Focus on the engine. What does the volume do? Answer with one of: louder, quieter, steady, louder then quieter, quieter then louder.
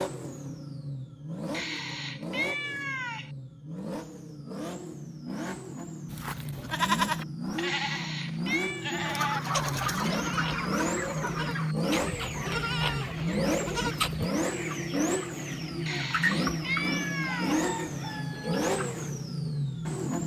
louder.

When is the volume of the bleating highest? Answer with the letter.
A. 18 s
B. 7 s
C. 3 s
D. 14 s
B.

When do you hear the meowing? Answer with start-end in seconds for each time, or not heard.
1.5-3.3, 7.7-8.8, 15.8-17.6.